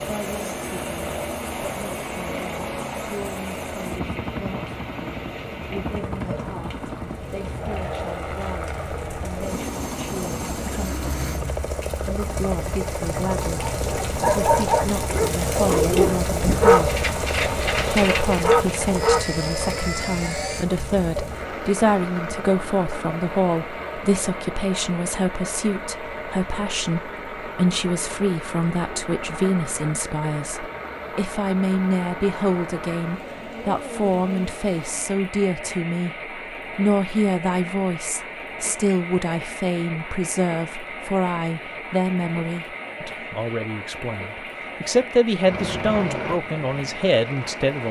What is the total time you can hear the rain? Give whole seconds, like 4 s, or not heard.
48 s.